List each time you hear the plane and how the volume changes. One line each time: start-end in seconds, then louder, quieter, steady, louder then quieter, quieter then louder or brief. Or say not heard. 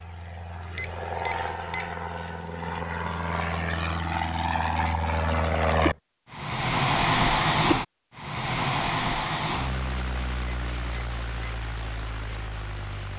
0.0-13.1 louder then quieter.